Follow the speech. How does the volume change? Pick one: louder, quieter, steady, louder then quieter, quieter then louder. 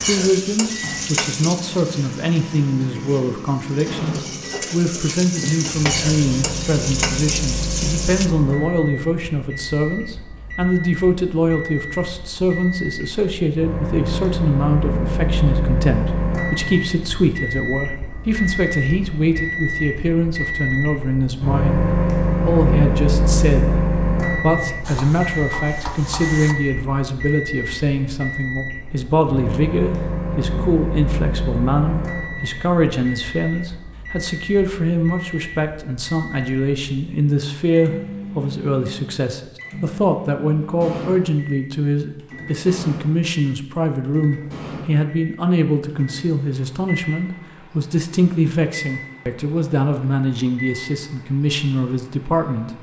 steady.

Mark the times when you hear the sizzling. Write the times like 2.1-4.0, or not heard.
0.0-8.3, 24.8-26.6.